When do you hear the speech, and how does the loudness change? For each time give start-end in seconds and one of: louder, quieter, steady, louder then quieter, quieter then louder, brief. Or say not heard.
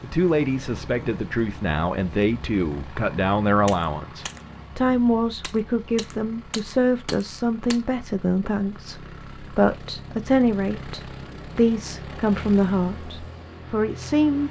0.0-14.4 steady.